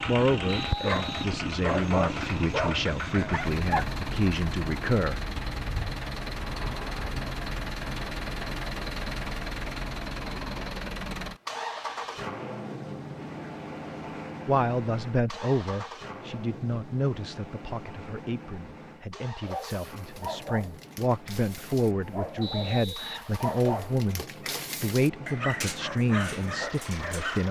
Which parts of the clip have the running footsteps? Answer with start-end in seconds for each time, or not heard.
not heard.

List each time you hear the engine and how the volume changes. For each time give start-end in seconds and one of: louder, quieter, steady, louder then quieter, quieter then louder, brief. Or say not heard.
0.0-27.4 quieter.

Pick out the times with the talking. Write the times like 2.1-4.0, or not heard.
0.1-5.2, 14.4-27.4.